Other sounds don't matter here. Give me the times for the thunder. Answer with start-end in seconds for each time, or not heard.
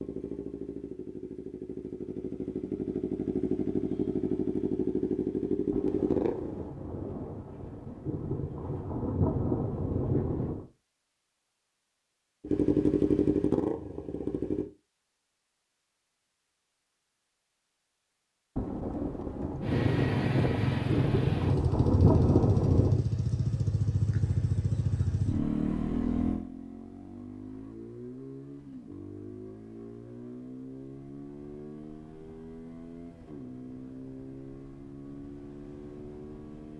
5.7-10.7, 18.6-23.1.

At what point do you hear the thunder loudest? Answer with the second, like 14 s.
22 s.